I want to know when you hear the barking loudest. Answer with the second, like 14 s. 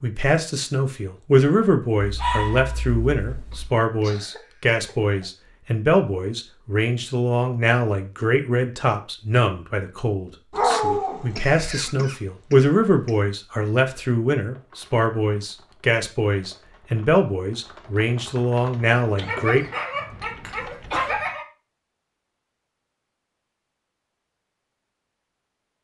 11 s.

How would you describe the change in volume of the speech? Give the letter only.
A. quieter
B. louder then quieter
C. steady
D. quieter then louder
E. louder
C.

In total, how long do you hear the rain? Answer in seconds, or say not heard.
not heard.